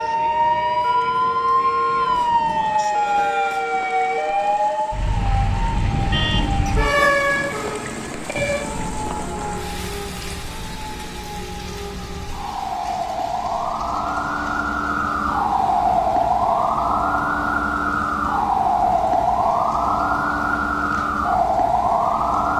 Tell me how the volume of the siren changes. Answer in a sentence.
The volume of the siren goes down, then up.